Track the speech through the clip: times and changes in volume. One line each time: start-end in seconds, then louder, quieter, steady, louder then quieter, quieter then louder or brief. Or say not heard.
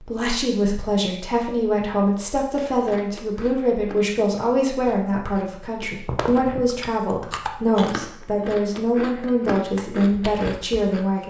0.0-11.2 steady.